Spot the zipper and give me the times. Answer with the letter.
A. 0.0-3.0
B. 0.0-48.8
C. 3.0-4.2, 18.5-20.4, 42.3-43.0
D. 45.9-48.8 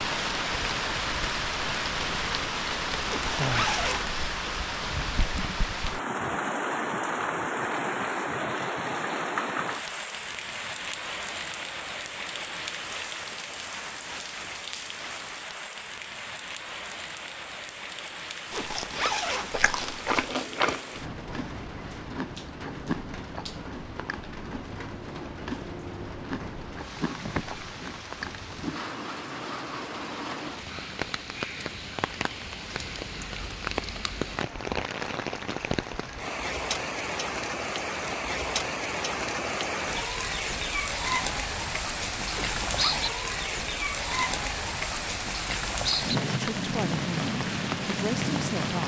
C.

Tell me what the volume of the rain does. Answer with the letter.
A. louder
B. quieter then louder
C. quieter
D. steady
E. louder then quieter
B.